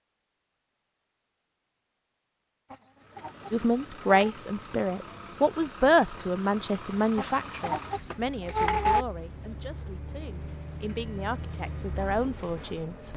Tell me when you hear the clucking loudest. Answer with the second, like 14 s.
9 s.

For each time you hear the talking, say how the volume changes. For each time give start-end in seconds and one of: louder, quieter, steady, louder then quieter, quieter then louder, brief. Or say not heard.
3.5-13.1 quieter then louder.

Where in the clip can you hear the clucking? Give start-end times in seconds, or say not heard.
2.7-4.3, 7.2-9.1.